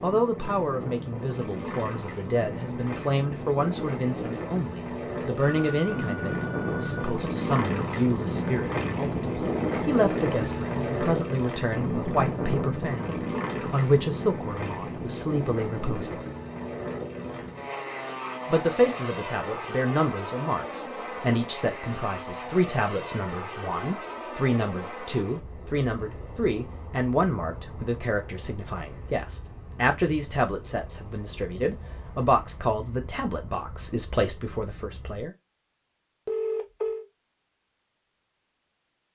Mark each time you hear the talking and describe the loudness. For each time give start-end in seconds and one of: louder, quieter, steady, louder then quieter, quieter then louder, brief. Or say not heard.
0.0-16.2 steady
18.4-35.4 steady.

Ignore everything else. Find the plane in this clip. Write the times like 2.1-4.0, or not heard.
0.0-35.2.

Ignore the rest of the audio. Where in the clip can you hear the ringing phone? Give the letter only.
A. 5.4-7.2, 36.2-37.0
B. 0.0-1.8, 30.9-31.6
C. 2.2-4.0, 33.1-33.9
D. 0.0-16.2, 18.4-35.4
A.